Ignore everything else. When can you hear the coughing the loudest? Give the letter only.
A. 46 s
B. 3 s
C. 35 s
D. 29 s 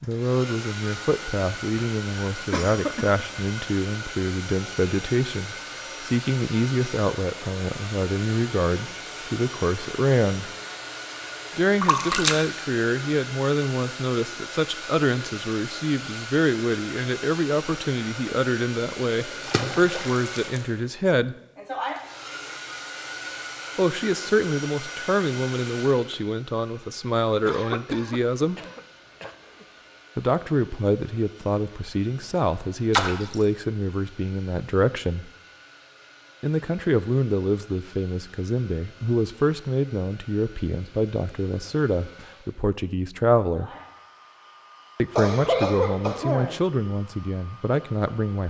A.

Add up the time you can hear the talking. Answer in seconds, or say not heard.
41 s.